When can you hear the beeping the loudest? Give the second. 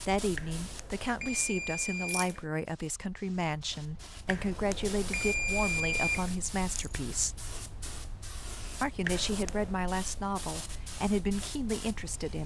6 s.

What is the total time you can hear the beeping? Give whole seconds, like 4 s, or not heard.
5 s.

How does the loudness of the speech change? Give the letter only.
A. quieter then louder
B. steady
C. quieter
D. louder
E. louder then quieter
B.